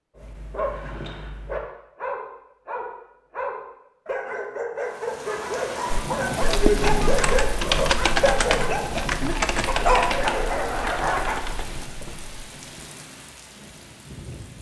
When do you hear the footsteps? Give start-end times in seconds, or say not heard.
not heard.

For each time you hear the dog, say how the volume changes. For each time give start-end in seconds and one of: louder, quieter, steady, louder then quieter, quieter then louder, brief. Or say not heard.
0.1-11.4 louder.